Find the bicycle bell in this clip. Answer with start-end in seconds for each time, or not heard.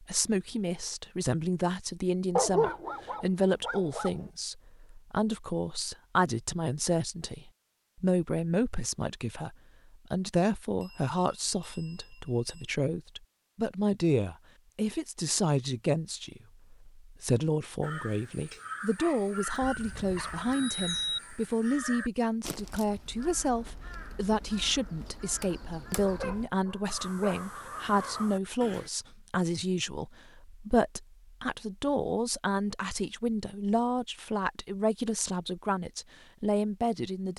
10.8-12.7, 19.6-21.2.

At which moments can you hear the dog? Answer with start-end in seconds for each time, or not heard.
2.4-4.2, 18.9-20.4, 25.5-27.4.